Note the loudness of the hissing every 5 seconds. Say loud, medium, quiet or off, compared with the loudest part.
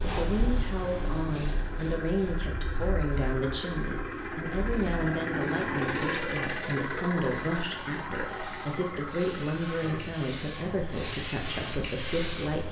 medium, medium, loud.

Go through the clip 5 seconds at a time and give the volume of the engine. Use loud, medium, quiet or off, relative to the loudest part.
medium, loud, medium.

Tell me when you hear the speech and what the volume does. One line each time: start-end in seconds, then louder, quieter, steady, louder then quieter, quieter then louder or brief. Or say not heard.
0.0-12.6 steady.